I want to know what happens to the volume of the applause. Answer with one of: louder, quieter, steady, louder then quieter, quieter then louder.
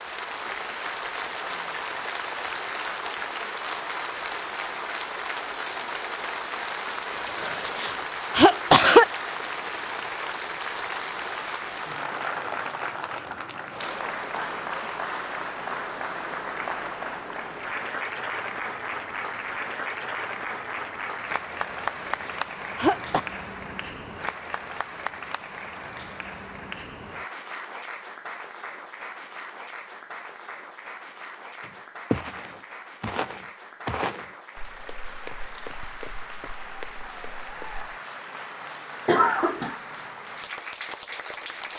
quieter.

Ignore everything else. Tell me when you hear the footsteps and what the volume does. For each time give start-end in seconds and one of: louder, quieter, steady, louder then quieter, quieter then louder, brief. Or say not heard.
31.6-37.9 quieter then louder.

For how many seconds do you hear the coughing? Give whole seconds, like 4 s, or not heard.
4 s.